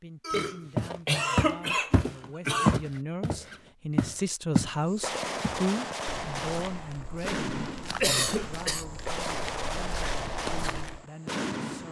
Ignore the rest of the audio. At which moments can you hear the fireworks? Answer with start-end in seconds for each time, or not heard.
4.8-11.8.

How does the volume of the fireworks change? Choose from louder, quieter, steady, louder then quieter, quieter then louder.
quieter then louder.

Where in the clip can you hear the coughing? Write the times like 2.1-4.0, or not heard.
0.2-2.8, 8.0-8.8.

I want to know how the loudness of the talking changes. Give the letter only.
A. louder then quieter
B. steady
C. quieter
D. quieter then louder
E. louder
A.